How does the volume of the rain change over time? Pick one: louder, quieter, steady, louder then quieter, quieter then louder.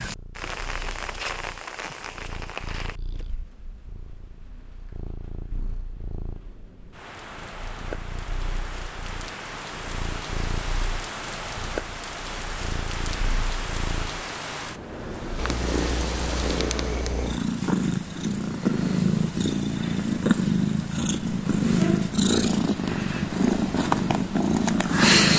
quieter then louder.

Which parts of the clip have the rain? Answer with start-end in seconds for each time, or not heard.
0.0-17.1.